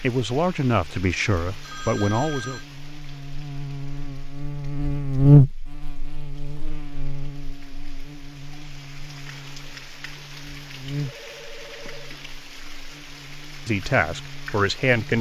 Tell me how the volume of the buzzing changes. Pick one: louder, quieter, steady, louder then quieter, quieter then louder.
louder then quieter.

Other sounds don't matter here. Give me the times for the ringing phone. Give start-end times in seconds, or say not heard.
1.6-2.6, 11.0-12.2.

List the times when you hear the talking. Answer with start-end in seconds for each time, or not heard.
0.0-2.6, 13.7-15.1.